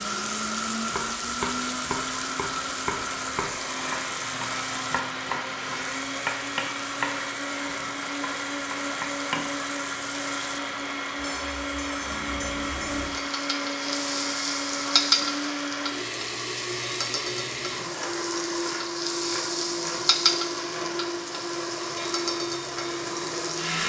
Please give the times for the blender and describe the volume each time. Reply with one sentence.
You can hear the blender from 0.0 to 23.8 s, at a steady volume.